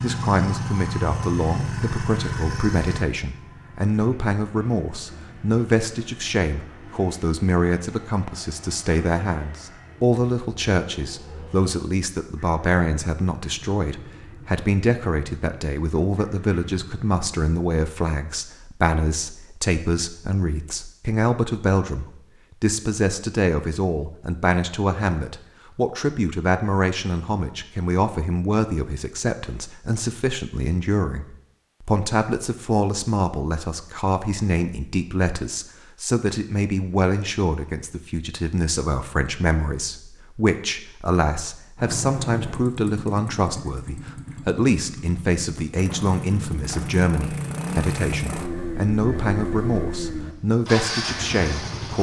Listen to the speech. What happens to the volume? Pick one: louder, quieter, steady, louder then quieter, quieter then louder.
steady.